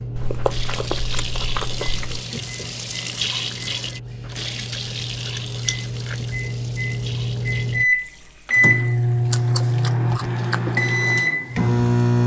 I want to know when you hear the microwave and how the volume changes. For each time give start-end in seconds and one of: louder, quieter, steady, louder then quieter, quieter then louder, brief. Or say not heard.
0.0-12.2 louder.